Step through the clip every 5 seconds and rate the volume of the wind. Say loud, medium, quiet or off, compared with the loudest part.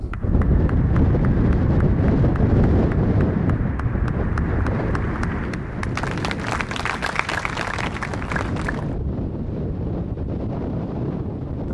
loud, medium, medium.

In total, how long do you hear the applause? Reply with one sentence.
You can hear the applause for 9 seconds altogether.